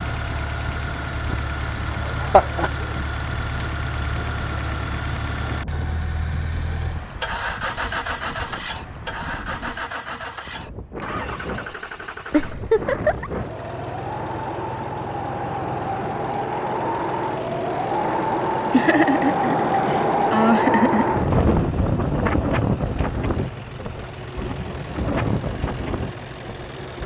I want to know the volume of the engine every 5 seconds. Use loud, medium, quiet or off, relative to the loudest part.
loud, loud, medium, medium, medium, medium.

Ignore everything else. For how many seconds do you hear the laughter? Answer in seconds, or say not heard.
4 s.